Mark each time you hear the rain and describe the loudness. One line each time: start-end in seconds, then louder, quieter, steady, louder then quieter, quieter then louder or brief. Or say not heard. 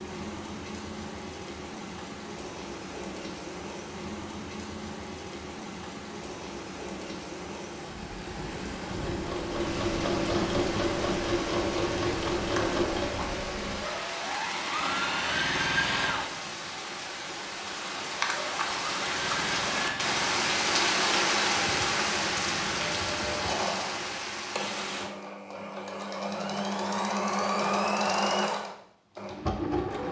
0.0-25.1 louder.